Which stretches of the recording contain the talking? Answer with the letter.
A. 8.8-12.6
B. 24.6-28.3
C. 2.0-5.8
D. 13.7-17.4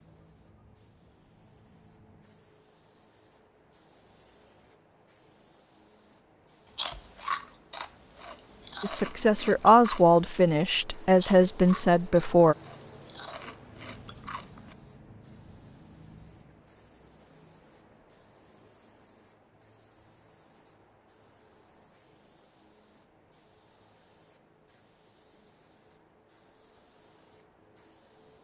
A.